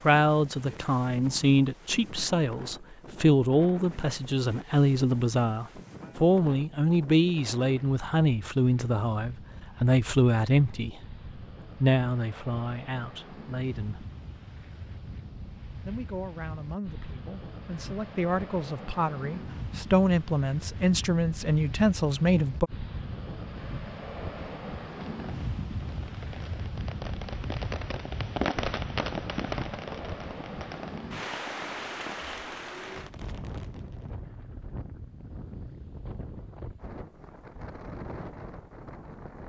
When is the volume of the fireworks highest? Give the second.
29 s.